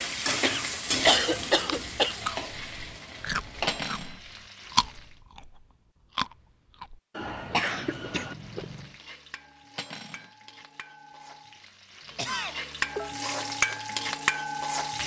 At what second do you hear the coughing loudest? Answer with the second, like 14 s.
1 s.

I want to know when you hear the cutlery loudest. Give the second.
4 s.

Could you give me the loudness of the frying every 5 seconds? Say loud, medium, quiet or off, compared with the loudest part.
loud, quiet, loud.